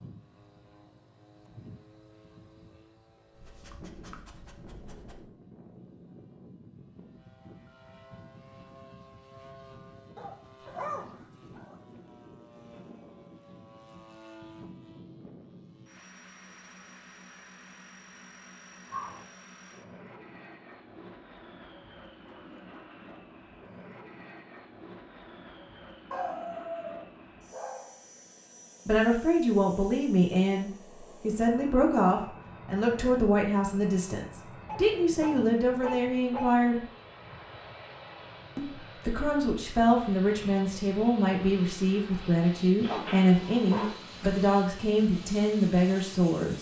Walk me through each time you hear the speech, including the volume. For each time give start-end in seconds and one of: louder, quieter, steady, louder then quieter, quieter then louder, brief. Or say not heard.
28.9-36.9 steady
38.5-46.5 steady.